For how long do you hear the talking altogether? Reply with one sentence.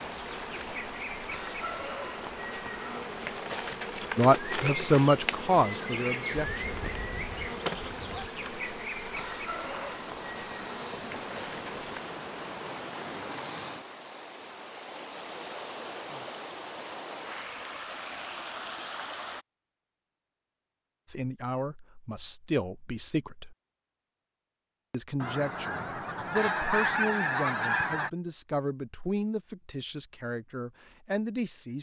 You can hear the talking for 12 seconds altogether.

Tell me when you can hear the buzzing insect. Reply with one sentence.
You can hear the buzzing insect from 0.0 to 12.2 s.